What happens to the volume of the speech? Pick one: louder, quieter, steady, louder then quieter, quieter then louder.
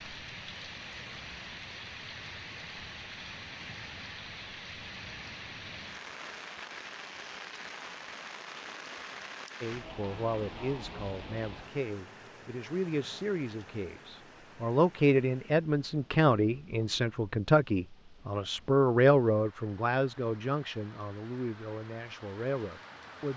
louder then quieter.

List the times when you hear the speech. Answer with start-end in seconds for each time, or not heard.
9.6-23.3.